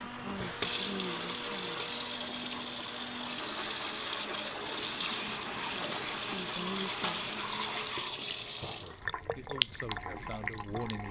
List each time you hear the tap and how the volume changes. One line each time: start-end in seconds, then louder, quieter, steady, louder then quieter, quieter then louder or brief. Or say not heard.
0.0-11.0 steady.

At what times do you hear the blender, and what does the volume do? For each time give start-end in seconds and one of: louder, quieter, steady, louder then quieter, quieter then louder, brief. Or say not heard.
0.0-8.0 steady.